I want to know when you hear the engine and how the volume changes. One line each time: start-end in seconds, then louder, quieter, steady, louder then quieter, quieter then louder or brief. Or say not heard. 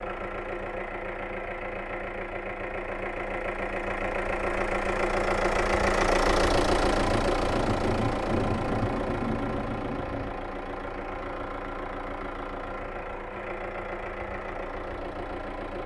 0.0-15.8 louder then quieter.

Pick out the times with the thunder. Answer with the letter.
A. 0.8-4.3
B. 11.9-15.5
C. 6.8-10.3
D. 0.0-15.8
C.